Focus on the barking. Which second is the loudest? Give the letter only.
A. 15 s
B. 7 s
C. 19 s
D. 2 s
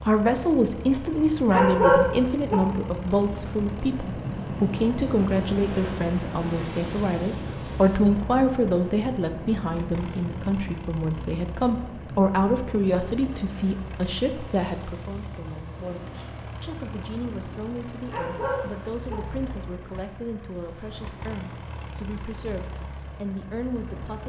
D.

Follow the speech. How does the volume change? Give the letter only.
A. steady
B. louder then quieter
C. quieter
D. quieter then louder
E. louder
C.